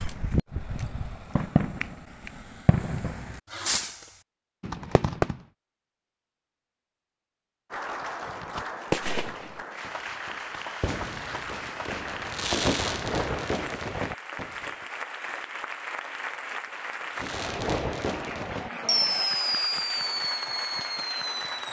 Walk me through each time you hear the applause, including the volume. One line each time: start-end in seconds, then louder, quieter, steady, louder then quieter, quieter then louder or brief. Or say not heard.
7.7-21.6 steady.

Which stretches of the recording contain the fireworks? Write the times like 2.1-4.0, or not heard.
0.0-5.4, 8.2-14.7, 17.1-21.6.